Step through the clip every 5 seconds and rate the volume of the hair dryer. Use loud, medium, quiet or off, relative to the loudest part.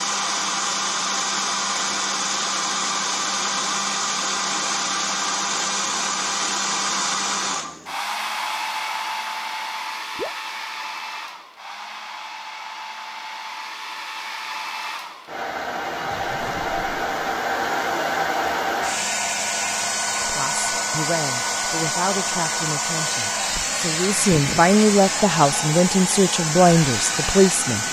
loud, loud, medium, loud, loud, loud.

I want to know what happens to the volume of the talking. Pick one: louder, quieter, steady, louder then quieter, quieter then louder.
louder.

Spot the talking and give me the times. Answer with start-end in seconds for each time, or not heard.
20.2-27.8.